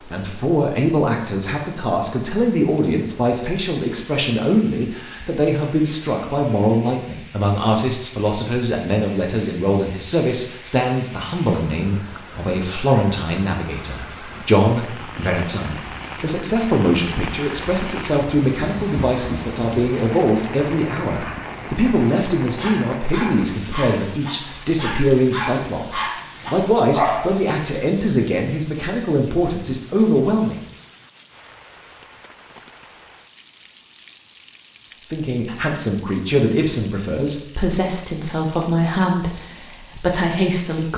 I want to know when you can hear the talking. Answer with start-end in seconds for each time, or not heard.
0.0-30.6, 35.0-40.9.